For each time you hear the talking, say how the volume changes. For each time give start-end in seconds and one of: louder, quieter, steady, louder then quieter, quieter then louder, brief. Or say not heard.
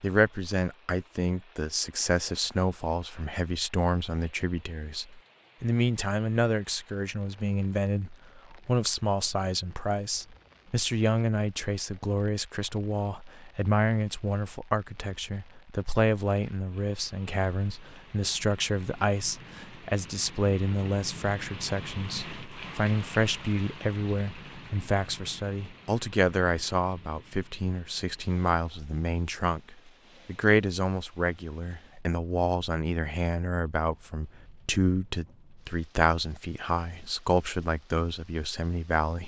0.0-39.2 steady.